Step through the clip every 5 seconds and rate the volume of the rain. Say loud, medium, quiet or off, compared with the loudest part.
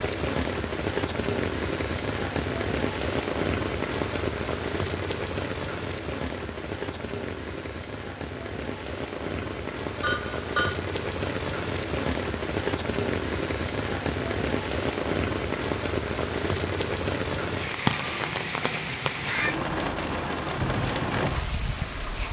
loud, medium, loud, loud, loud.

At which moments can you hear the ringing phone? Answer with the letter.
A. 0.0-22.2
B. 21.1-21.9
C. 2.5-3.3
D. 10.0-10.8
D.